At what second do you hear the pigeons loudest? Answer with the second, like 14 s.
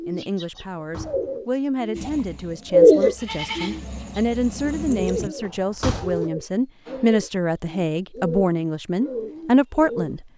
3 s.